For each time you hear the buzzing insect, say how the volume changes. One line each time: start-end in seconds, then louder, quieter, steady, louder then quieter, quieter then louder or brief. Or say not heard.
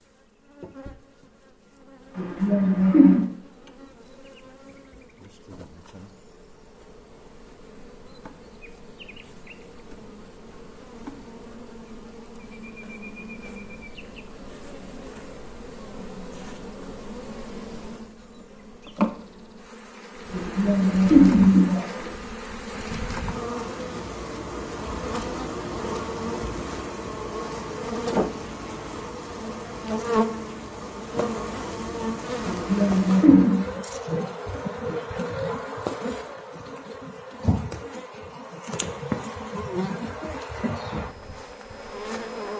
0.0-42.5 louder.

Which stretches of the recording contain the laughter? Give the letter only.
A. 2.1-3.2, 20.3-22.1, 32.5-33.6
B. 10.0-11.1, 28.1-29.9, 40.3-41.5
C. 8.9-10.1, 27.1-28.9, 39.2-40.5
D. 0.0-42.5
A.